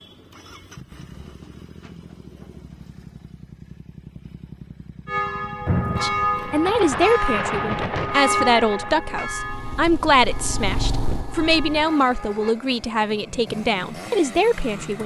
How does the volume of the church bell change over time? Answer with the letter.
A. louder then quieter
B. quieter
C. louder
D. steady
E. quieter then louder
B.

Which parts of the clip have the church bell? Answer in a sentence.
You can hear the church bell from 5.0 to 12.6 s.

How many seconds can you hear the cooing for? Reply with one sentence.
The cooing can be heard for 2 seconds in total.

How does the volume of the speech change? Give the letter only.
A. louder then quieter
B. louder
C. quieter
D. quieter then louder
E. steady
E.